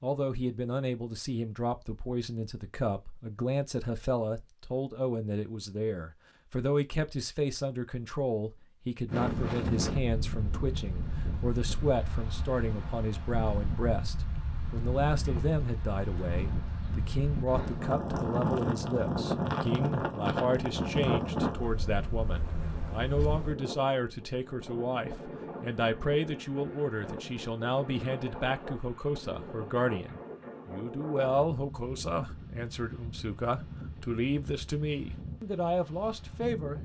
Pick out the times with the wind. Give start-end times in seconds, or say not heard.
9.1-36.8.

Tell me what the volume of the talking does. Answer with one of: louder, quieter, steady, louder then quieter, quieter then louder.
steady.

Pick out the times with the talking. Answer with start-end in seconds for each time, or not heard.
0.0-36.8.